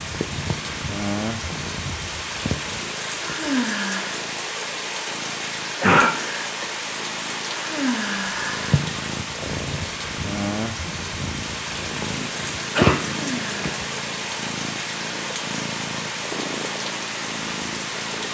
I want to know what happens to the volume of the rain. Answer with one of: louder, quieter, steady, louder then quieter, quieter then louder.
steady.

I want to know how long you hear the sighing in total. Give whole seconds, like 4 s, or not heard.
3 s.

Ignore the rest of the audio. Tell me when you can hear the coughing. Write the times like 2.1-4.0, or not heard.
5.8-6.7, 12.1-13.0.